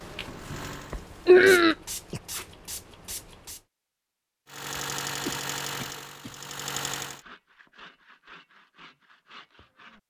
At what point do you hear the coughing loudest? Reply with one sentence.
The volume of the coughing peaks at 1 second.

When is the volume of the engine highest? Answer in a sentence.
The volume of the engine peaks at 5 seconds.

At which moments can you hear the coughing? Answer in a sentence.
The coughing can be heard from 0.9 to 2.2 s and from 5.2 to 6.3 s.